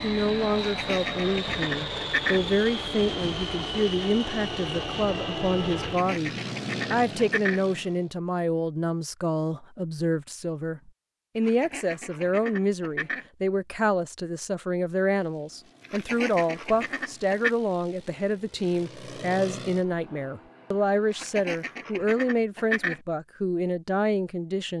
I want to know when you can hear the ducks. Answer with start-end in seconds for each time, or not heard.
0.6-2.4, 5.7-7.6, 11.3-13.2, 15.8-17.5, 21.1-23.0.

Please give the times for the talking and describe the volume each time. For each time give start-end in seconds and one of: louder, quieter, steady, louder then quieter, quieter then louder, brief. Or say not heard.
0.0-24.7 steady.